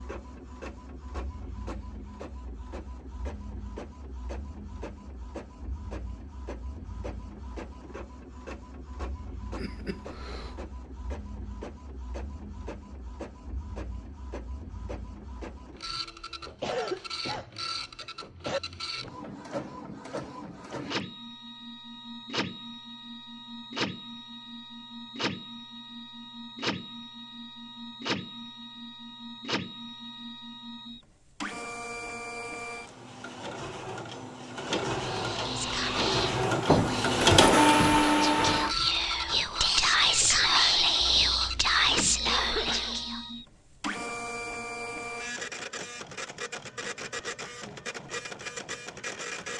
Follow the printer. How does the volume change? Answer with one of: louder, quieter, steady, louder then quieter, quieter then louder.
louder then quieter.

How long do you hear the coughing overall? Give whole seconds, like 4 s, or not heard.
4 s.